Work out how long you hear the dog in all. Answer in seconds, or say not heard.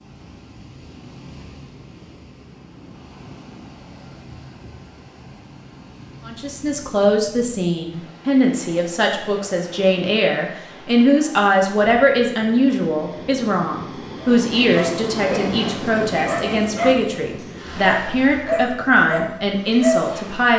6 s.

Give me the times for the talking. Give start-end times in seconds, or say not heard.
6.2-20.5.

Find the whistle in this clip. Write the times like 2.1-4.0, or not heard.
not heard.